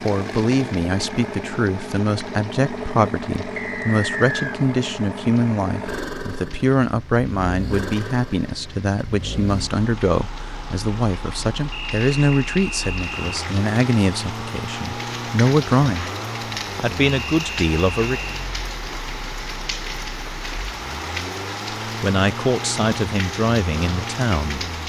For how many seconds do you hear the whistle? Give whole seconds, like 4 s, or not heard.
4 s.